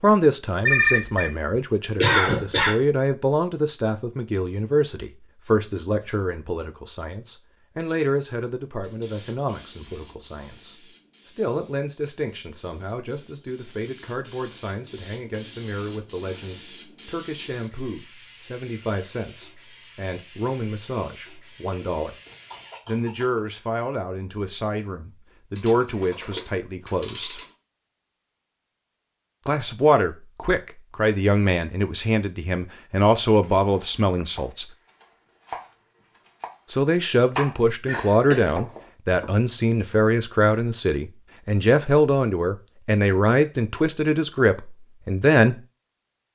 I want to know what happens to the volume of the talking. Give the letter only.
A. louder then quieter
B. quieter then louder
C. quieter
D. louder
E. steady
B.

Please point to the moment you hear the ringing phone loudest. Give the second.
1 s.